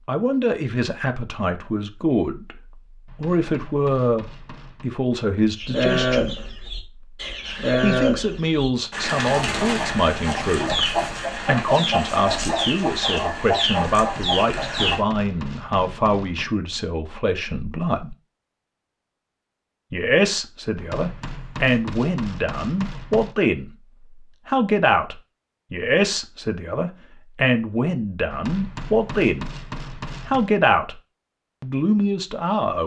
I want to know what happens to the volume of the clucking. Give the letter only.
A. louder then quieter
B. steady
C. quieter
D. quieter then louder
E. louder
B.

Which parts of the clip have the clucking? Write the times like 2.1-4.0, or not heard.
5.5-15.0.